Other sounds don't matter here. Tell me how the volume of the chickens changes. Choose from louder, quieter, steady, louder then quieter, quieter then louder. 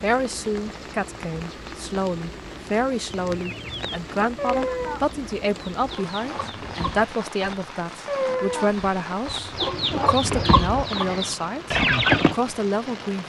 quieter then louder.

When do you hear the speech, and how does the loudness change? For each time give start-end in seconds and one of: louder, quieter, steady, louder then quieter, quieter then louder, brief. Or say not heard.
0.0-13.2 steady.